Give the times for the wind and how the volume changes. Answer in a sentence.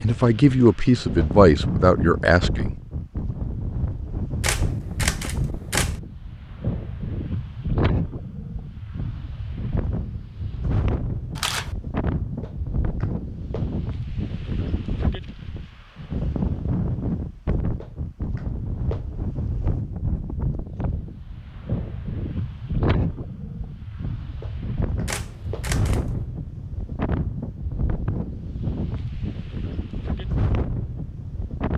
The wind can be heard from 0.0 to 31.7 s, at a steady volume.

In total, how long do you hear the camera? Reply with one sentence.
The camera can be heard for 3 seconds in total.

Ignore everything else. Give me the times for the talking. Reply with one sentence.
The talking can be heard from 0.0 to 2.8 s.